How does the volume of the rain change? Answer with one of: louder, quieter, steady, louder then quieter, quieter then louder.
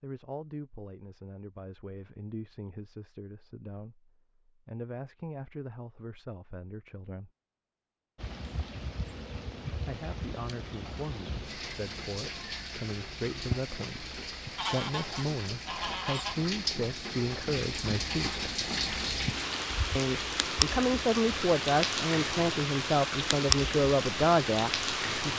louder.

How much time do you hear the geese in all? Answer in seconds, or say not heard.
2 s.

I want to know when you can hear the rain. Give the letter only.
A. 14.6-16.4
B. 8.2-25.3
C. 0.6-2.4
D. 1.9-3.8
B.